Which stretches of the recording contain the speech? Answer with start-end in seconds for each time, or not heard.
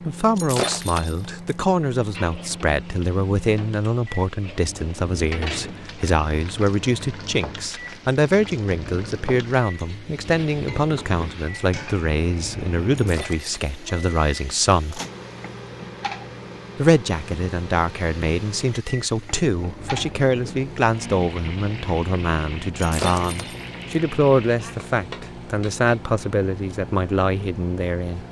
0.0-15.0, 16.8-28.2.